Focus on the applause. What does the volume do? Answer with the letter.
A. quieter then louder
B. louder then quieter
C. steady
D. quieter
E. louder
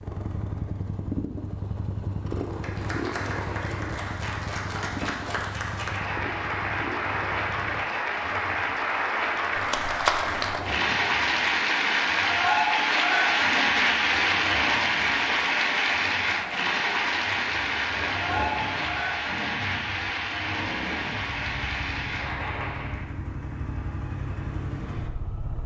B.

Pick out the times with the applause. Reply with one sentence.
The applause can be heard from 2.5 to 23.1 s.